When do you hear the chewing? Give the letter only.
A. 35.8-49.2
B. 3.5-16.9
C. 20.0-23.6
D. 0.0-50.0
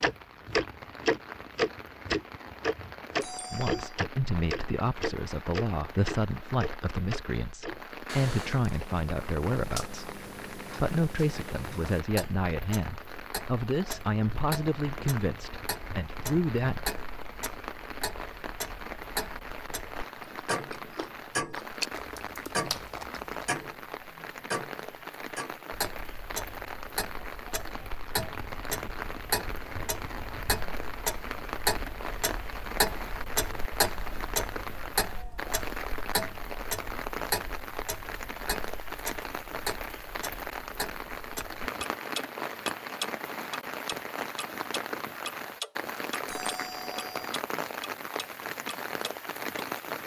C.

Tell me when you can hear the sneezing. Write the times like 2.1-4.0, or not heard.
not heard.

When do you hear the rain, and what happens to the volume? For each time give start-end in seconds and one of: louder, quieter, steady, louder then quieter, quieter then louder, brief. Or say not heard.
0.0-50.0 louder.